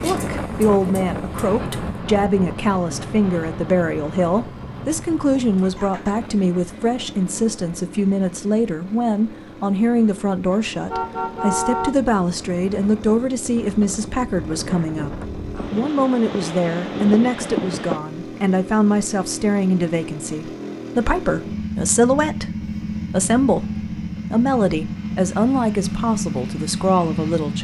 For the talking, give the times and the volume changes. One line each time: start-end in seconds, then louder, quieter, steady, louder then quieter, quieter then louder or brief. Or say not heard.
0.0-27.5 steady.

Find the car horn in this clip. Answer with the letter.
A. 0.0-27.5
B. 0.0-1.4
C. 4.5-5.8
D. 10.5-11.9
D.